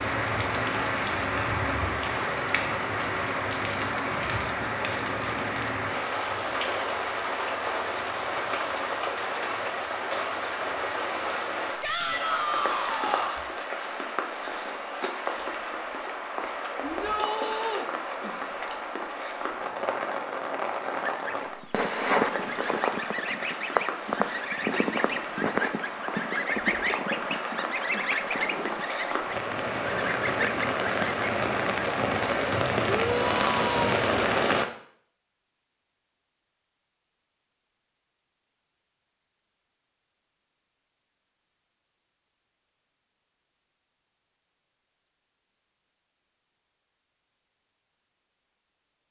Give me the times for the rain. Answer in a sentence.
The rain can be heard from 0.0 to 34.6 s.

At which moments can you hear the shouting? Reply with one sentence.
The shouting can be heard from 11.8 to 13.4 s, from 16.8 to 17.9 s and from 32.9 to 34.0 s.